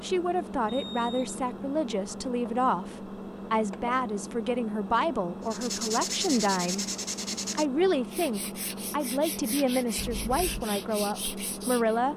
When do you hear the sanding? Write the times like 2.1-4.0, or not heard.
5.4-11.9.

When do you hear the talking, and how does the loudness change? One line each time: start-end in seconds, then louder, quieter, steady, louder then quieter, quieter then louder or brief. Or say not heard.
0.0-6.8 steady
7.5-12.1 steady.